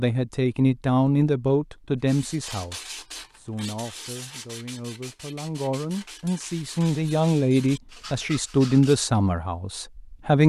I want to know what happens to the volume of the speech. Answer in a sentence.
The loudness of the speech goes down, then up.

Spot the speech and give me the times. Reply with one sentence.
You can hear the speech from 0.0 to 10.4 s.